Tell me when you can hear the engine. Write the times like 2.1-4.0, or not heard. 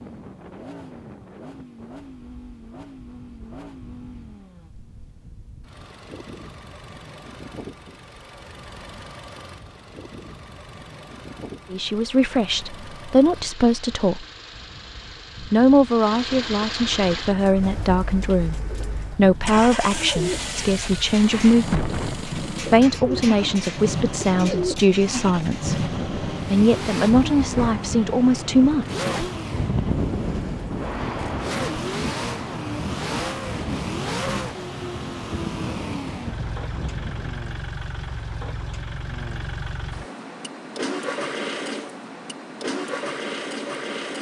0.0-44.1.